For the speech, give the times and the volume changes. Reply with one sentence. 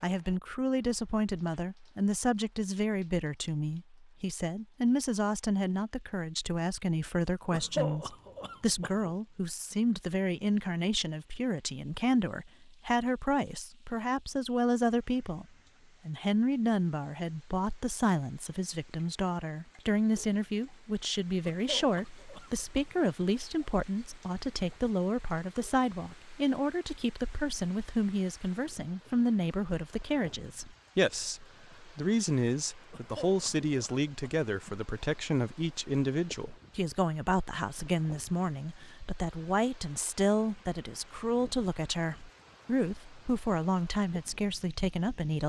The speech can be heard from 0.0 to 15.4 s, at a steady volume; and from 16.1 to 45.4 s, at a steady volume.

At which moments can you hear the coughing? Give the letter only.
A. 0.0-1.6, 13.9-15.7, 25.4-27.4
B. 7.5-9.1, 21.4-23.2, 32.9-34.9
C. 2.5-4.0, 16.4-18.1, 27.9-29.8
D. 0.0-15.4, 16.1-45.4
B.